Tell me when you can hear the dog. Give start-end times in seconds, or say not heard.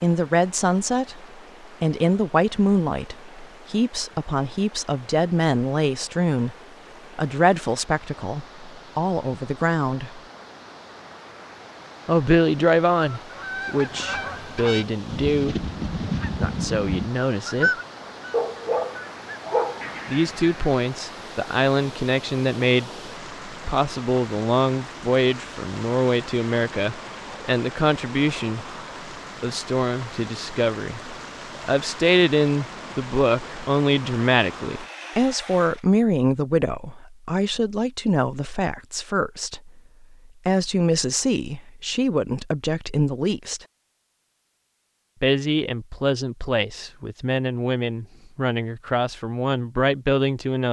18.3-20.0.